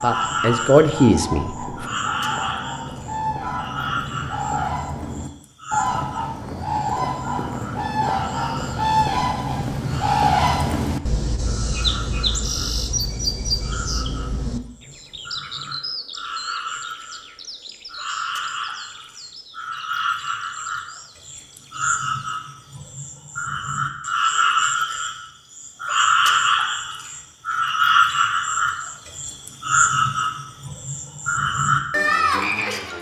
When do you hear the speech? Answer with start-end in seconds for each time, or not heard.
0.0-1.5.